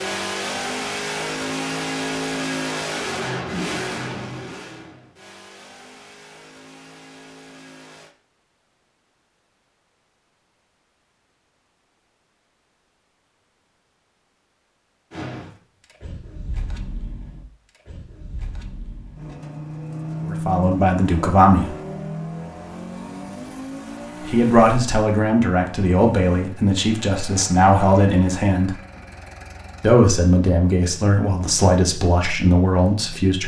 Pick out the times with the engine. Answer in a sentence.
The engine can be heard from 0.0 to 8.2 s and from 15.1 to 33.4 s.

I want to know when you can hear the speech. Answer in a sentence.
You can hear the speech from 20.2 to 21.7 s, from 24.2 to 28.8 s and from 29.8 to 33.4 s.